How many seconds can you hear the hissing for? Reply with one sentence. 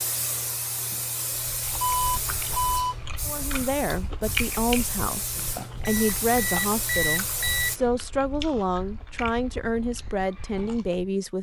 The hissing can be heard for 8 seconds in total.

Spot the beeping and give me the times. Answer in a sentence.
The beeping can be heard from 1.8 to 3.0 s and from 5.8 to 7.8 s.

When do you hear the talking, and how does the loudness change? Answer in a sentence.
You can hear the talking from 3.2 to 11.3 s, at a steady volume.